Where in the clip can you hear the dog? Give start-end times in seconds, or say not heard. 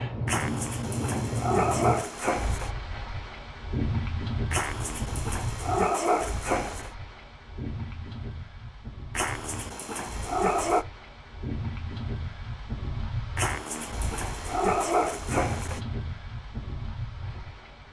0.2-2.7, 4.5-6.9, 9.2-10.8, 13.3-15.8.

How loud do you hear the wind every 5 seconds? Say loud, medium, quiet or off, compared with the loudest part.
loud, medium, medium, medium.